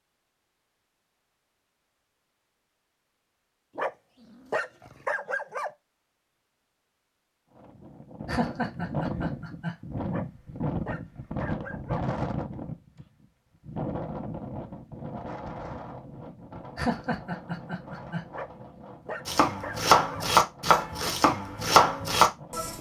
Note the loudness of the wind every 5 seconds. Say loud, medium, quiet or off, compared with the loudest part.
off, loud, loud, medium, quiet.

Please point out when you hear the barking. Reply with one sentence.
The barking can be heard from 3.8 to 5.7 s, from 10.1 to 12.1 s and from 18.3 to 20.2 s.